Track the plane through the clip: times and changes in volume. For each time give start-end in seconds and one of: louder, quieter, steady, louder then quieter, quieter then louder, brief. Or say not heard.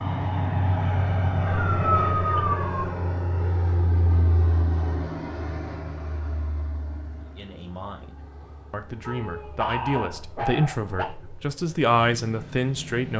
0.0-13.1 quieter then louder.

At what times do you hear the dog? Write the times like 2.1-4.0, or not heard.
1.4-2.9, 9.1-11.1.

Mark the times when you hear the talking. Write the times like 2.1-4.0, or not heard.
7.2-13.1.